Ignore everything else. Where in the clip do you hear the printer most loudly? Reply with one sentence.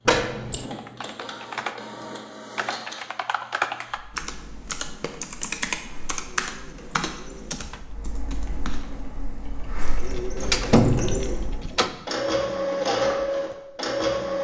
The volume of the printer peaks at 13 seconds.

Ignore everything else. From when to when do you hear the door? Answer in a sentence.
You can hear the door from 0.1 to 0.7 s, from 7.5 to 7.9 s and from 10.3 to 11.9 s.